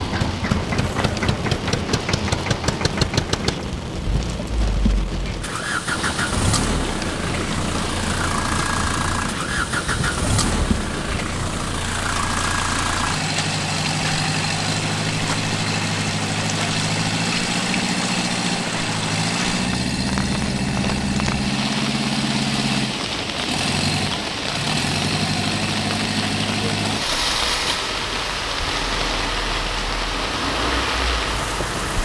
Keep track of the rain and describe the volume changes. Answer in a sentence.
The volume of the rain stays about the same.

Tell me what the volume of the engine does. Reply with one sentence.
The loudness of the engine stays about the same.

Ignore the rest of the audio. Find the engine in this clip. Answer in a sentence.
You can hear the engine from 0.0 to 32.0 s.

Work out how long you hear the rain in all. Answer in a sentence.
You can hear the rain for 32 seconds altogether.